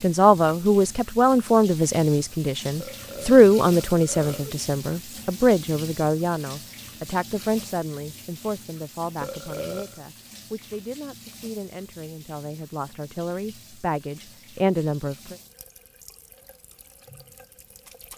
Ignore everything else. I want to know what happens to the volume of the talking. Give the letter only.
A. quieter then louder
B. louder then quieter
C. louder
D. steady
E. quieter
A.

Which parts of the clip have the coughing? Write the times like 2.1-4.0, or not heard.
not heard.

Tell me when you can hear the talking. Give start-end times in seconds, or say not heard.
0.0-15.3.